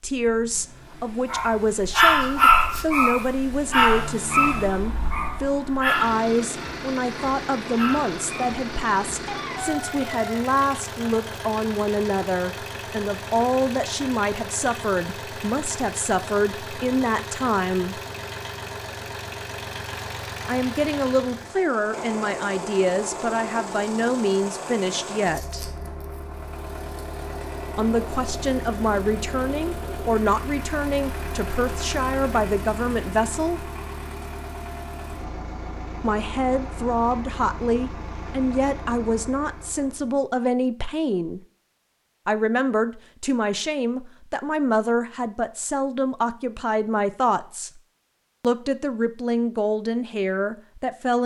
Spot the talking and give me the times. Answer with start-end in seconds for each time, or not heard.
0.0-18.0, 20.4-25.6, 27.8-33.7, 36.0-41.4, 42.2-47.7, 48.4-51.2.